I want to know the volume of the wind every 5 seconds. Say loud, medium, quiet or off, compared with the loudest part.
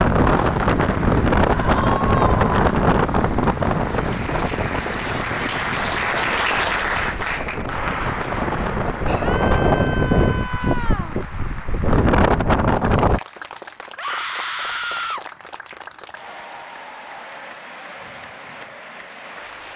loud, medium, loud, off.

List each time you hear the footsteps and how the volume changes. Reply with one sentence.
You can't hear the footsteps here.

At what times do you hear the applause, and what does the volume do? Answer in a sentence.
The applause can be heard from 0.2 to 19.7 s, getting louder then quieter.